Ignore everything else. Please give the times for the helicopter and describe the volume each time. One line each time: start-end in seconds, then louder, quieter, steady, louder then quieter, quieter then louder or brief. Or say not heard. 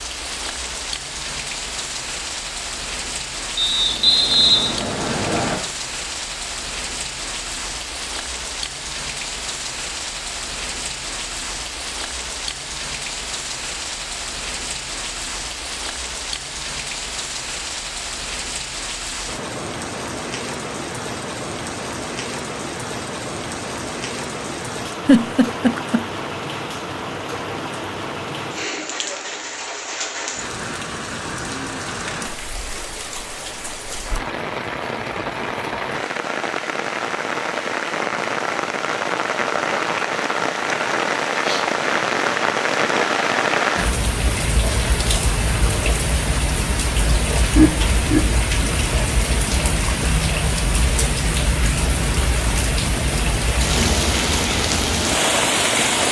not heard.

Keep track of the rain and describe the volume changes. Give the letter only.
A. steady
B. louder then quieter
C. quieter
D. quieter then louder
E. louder
E.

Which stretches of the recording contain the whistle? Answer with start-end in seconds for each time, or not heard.
3.5-5.6.